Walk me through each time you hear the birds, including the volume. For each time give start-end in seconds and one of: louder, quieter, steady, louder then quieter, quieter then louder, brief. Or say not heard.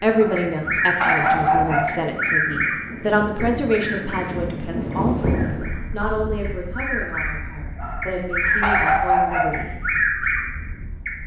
0.3-11.2 quieter then louder.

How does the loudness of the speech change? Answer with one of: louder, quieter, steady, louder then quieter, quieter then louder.
quieter.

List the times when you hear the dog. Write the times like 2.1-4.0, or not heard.
0.1-1.9, 7.8-9.6.